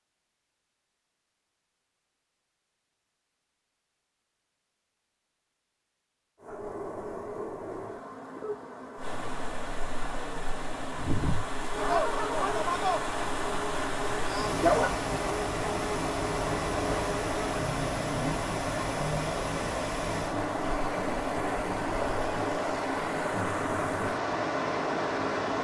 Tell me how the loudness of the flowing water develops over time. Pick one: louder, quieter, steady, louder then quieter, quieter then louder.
louder.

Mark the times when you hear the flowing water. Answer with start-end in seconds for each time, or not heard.
8.9-25.5.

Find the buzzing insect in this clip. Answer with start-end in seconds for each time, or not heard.
6.4-19.4.